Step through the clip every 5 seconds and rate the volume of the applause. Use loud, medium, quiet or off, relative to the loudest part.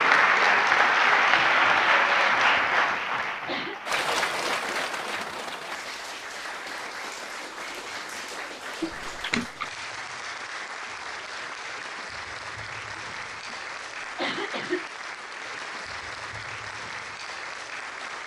loud, quiet, quiet, quiet.